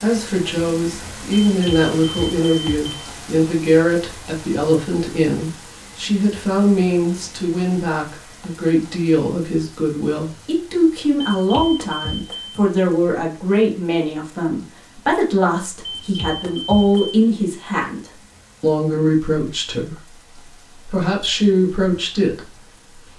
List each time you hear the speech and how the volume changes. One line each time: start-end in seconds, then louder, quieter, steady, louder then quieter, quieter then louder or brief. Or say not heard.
0.0-23.1 steady.